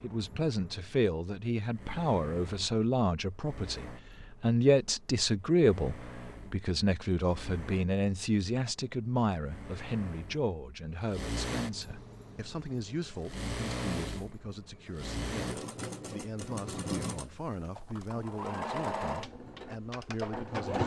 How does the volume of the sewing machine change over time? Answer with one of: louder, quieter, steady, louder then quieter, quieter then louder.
louder.